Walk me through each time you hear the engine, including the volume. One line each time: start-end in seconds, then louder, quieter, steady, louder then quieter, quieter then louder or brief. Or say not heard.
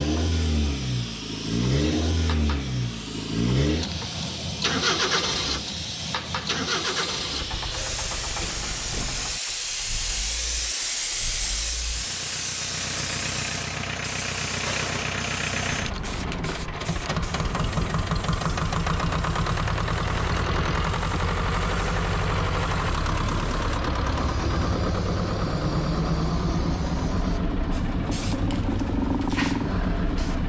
0.0-30.4 quieter then louder.